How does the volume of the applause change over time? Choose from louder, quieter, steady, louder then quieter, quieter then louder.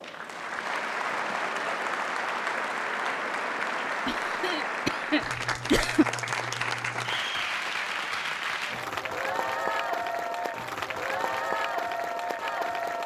steady.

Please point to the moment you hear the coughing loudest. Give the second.
6 s.